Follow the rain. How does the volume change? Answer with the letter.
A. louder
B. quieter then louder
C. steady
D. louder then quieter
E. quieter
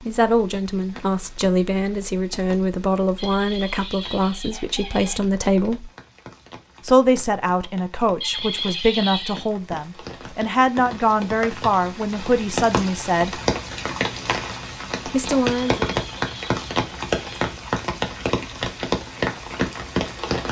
A.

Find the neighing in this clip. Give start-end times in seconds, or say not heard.
3.1-5.2, 8.2-9.5, 15.6-17.6.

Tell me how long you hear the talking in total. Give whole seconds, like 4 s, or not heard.
13 s.